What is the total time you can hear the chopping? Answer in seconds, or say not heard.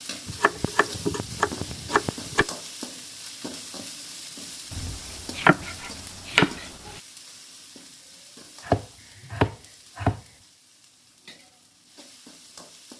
6 s.